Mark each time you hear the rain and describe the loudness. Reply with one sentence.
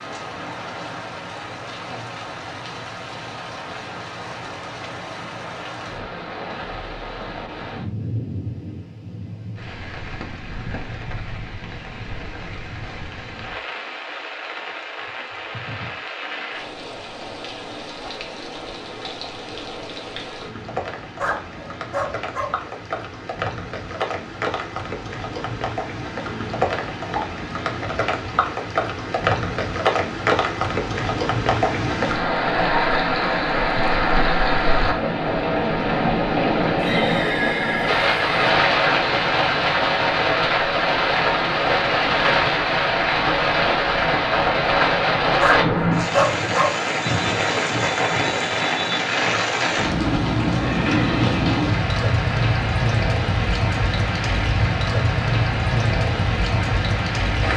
You can hear the rain from 0.0 to 57.5 s, getting louder.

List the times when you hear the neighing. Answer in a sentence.
The neighing can be heard from 36.8 to 38.4 s.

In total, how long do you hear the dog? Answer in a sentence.
You can hear the dog for 3 seconds altogether.